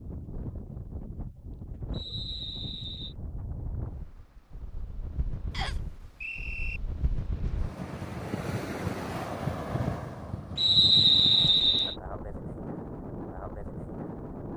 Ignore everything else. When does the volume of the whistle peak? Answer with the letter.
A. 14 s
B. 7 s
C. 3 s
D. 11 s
D.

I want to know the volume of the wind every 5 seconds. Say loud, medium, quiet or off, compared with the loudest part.
medium, loud, loud.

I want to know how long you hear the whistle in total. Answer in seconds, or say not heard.
4 s.